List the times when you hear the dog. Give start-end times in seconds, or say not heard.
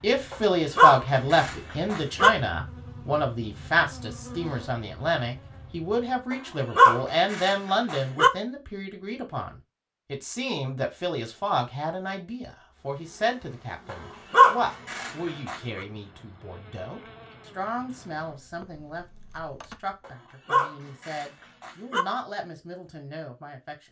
0.3-2.3, 6.3-8.3, 13.9-15.6, 20.1-22.1.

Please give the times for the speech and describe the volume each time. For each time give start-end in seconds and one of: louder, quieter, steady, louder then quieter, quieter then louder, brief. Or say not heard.
0.0-23.8 quieter.